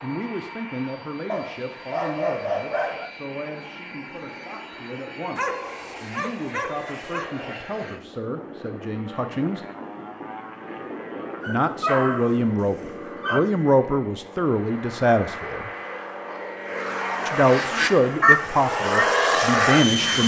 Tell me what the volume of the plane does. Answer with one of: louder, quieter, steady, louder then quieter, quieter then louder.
louder.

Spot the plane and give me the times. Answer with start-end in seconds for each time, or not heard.
0.0-20.2.